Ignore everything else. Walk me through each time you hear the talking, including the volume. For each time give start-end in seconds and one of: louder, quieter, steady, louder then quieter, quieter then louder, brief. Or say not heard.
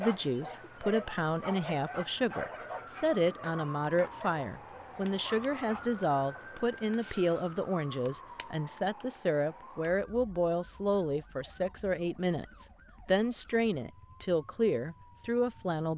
0.0-15.9 steady.